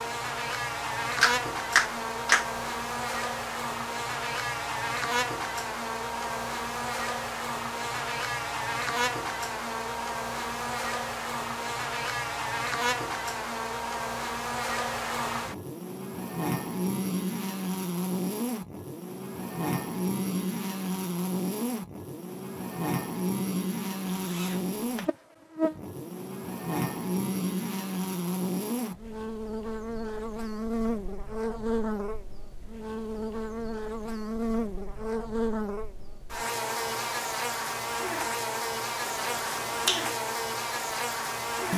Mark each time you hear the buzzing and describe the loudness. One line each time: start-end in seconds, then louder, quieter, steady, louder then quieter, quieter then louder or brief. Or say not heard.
0.0-41.7 steady.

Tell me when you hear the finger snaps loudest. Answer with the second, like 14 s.
2 s.